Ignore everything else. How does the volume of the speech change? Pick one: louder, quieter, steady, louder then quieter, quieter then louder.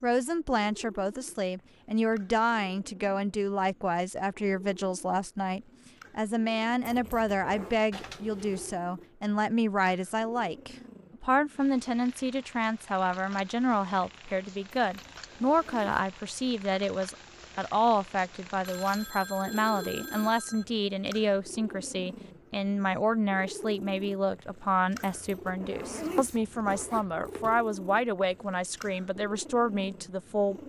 steady.